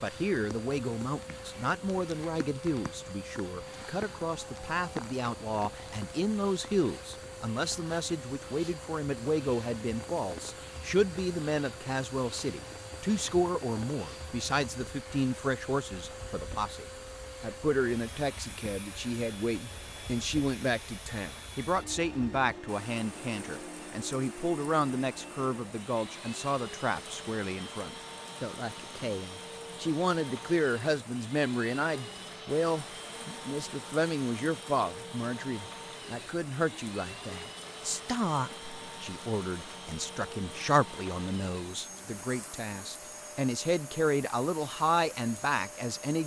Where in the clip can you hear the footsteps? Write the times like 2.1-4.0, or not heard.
not heard.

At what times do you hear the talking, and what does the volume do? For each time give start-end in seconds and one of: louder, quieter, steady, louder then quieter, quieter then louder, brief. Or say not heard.
0.0-46.2 steady.